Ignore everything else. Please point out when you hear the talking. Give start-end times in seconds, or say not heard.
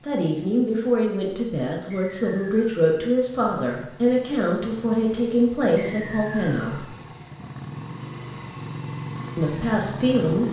0.0-6.9, 9.3-10.4.